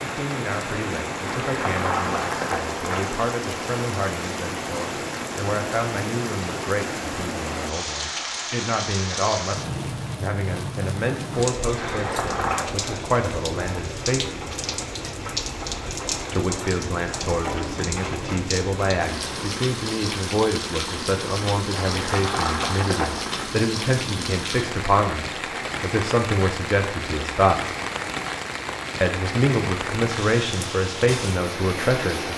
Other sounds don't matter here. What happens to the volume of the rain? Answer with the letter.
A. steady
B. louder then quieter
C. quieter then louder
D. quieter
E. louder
A.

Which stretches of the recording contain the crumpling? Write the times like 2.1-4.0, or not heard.
1.2-3.2, 11.8-12.7, 21.7-23.5.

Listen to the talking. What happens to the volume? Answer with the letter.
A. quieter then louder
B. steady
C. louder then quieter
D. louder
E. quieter
D.